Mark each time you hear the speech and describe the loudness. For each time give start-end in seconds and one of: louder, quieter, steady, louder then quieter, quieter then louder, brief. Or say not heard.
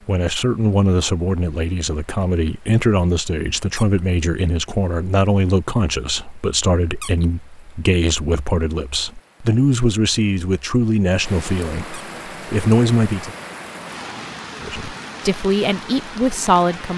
0.1-13.3 steady
14.6-16.9 brief.